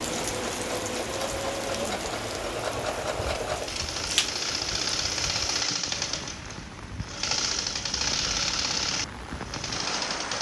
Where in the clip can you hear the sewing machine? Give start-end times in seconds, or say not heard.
0.0-10.3.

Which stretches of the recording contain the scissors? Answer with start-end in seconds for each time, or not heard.
3.2-4.3.